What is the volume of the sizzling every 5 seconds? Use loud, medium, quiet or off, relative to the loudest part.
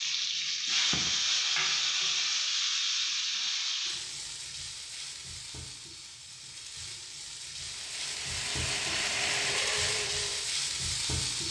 loud, medium, loud.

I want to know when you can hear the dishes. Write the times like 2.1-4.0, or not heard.
not heard.